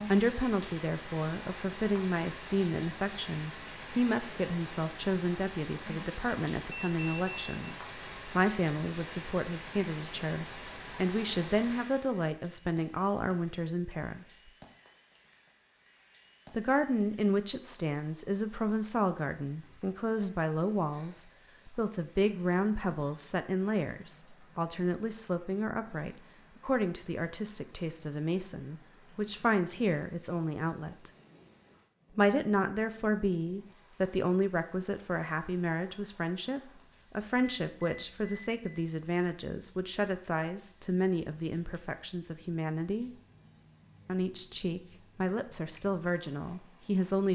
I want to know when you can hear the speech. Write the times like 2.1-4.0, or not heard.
0.1-14.4, 16.5-31.1, 32.1-43.1, 44.0-47.2.